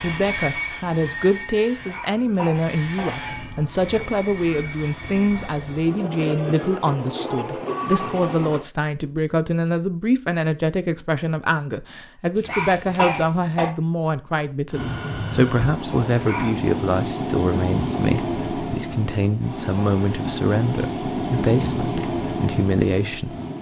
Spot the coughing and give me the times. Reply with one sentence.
You can hear the coughing from 1.8 to 3.2 s, from 12.3 to 13.7 s and from 16.1 to 16.6 s.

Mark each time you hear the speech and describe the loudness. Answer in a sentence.
The speech can be heard from 0.0 to 23.4 s, at a steady volume.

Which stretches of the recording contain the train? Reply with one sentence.
The train can be heard from 0.0 to 8.7 s and from 14.7 to 23.5 s.